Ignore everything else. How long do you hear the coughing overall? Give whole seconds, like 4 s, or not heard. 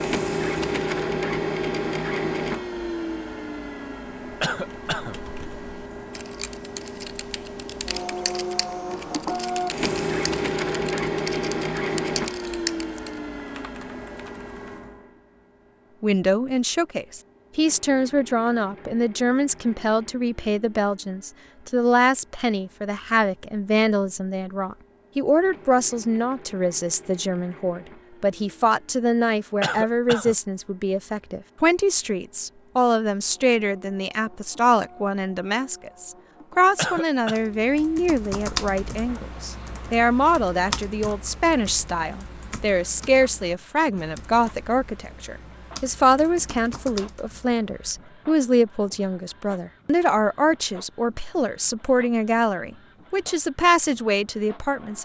2 s.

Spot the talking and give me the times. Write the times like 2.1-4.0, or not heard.
16.0-55.0.